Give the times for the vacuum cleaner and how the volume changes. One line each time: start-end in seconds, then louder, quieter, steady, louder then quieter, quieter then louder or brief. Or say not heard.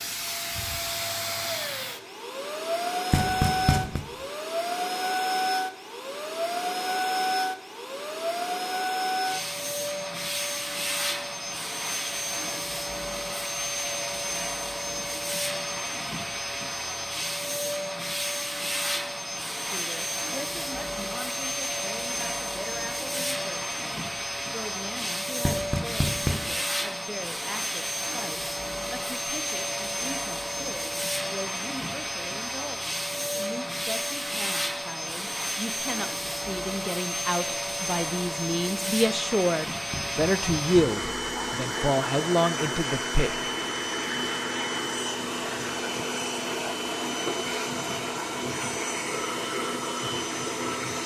0.0-51.0 steady.